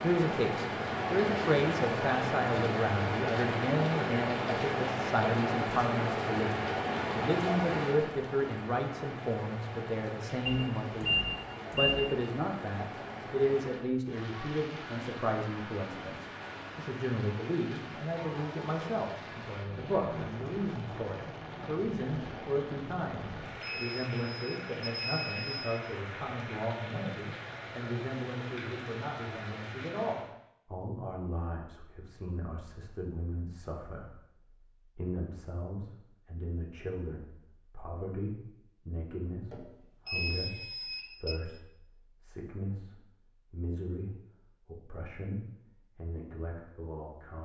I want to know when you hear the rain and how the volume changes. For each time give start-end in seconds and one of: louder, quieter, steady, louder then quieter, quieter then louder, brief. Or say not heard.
0.0-30.4 quieter.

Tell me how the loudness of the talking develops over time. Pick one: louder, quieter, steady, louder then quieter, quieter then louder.
quieter.